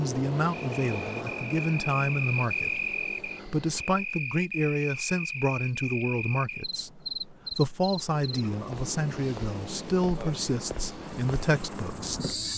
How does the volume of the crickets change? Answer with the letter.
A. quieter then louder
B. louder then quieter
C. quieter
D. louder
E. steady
C.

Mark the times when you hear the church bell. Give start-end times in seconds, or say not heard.
not heard.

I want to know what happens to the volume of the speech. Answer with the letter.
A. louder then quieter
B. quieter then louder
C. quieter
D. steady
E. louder
D.